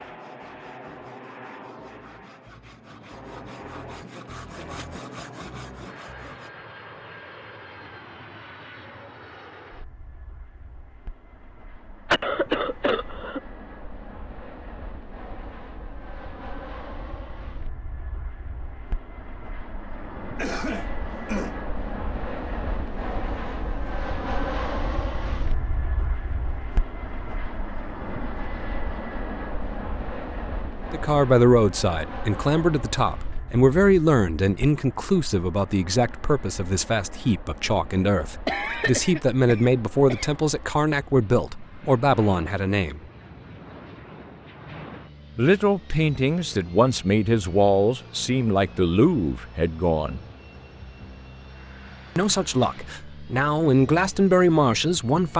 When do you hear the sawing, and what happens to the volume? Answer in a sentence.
The sawing can be heard from 0.0 to 6.5 s, getting louder.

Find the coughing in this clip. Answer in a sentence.
The coughing can be heard from 12.1 to 13.4 s, from 20.4 to 21.6 s and from 38.5 to 40.3 s.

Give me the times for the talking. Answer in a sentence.
You can hear the talking from 30.9 to 43.0 s, from 45.4 to 50.2 s and from 52.1 to 55.3 s.